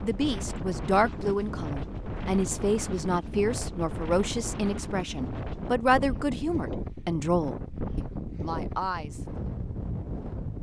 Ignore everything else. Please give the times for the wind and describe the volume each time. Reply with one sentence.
You can hear the wind from 0.0 to 10.5 s, at a steady volume.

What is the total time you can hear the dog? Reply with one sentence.
You can't hear the dog here.